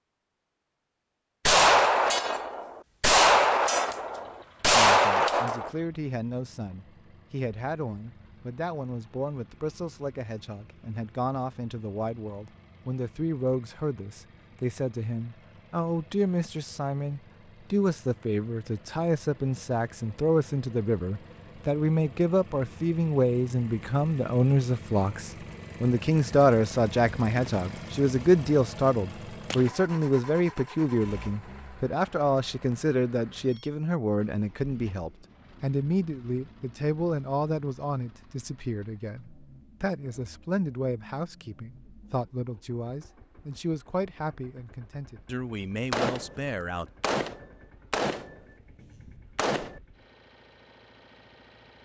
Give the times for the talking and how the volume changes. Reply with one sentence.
You can hear the talking from 4.7 to 46.9 s, getting louder then quieter.